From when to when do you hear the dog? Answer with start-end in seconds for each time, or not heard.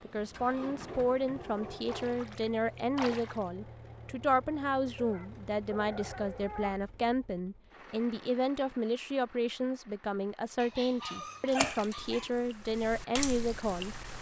0.6-2.1, 5.0-6.8, 10.6-12.3.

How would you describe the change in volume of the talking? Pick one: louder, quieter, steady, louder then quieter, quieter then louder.
steady.